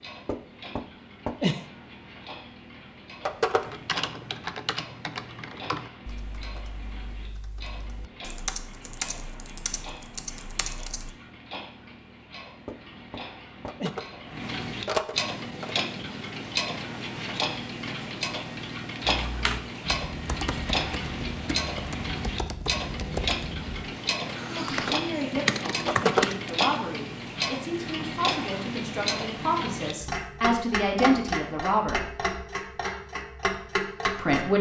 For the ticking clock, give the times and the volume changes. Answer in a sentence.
The ticking clock can be heard from 0.0 to 34.5 s, getting louder.